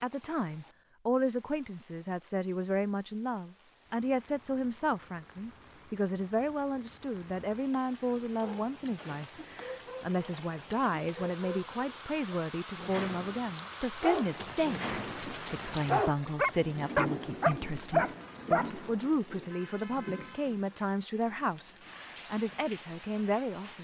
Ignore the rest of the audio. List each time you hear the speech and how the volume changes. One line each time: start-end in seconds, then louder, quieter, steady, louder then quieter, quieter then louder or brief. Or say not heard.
0.0-23.7 steady.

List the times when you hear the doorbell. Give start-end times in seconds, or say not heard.
not heard.